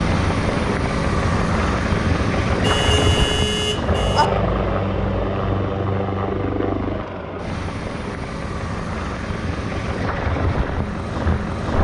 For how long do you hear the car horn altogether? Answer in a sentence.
The car horn can be heard for 2 seconds in total.